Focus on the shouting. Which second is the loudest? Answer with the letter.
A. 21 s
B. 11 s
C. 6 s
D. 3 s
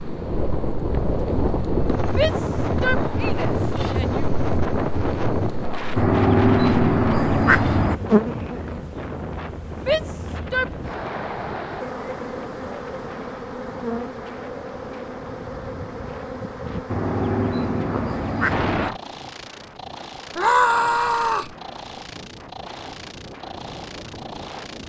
A.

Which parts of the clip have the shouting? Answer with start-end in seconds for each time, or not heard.
2.1-4.2, 9.8-10.8, 20.4-21.6.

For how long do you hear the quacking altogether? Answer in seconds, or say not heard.
4 s.